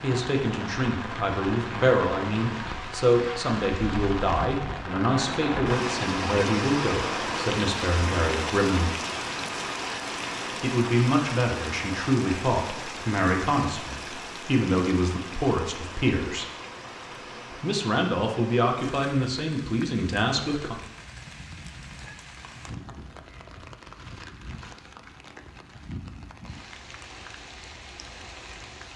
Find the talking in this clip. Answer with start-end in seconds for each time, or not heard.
0.0-8.9, 10.6-16.4, 17.6-20.8.